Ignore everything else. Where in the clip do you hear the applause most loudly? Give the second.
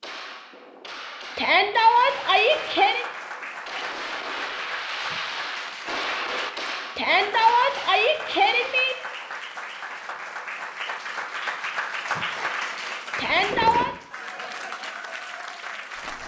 12 s.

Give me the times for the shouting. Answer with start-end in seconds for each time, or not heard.
1.4-3.0, 7.0-8.9, 13.2-13.9.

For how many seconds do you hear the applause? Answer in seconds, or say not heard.
14 s.